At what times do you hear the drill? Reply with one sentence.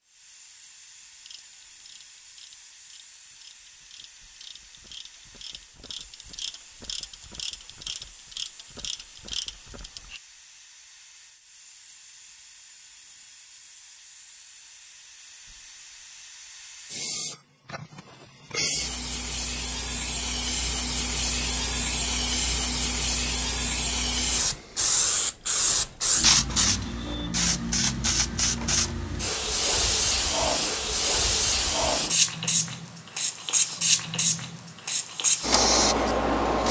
The drill can't be heard in this clip.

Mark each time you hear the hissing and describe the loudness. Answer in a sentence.
You can hear the hissing from 0.1 to 36.6 s, getting louder.